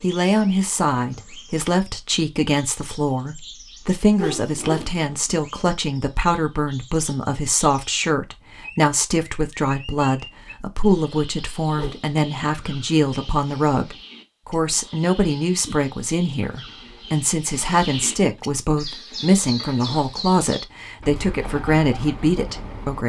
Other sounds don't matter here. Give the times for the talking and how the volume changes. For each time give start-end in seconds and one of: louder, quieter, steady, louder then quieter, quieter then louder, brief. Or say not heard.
0.0-23.0 steady.